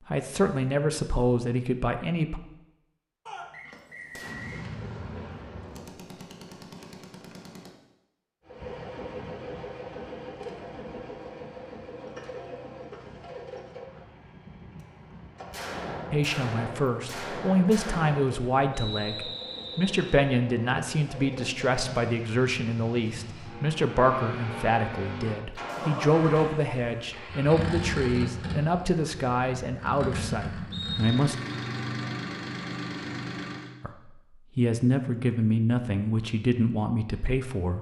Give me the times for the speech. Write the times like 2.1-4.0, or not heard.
0.1-2.4, 16.1-31.4, 33.8-37.7.